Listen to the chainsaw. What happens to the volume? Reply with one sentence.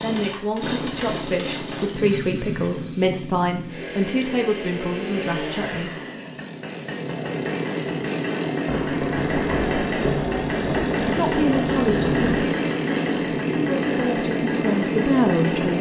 The volume of the chainsaw goes up.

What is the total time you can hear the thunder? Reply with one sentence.
You can hear the thunder for 4 seconds altogether.